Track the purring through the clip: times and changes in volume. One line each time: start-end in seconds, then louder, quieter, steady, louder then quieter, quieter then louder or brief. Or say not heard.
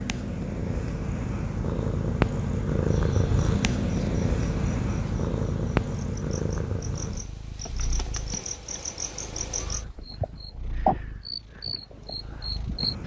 0.0-13.0 quieter.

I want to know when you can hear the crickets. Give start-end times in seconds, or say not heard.
2.9-13.0.